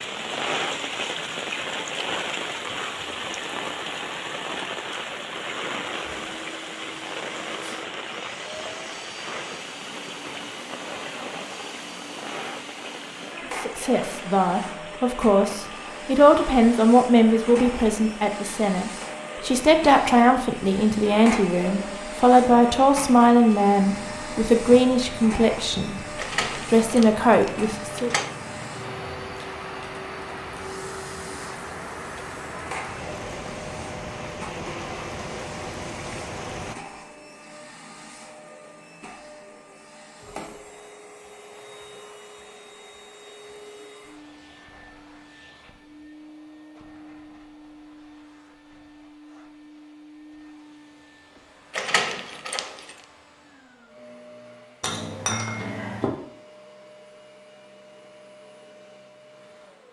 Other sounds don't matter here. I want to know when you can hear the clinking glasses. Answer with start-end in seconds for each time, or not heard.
54.8-56.1.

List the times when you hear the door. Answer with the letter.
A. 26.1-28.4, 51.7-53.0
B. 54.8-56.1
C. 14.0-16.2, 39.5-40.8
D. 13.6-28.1
A.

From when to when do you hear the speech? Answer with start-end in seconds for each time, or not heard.
13.6-28.1.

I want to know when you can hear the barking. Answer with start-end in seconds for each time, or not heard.
not heard.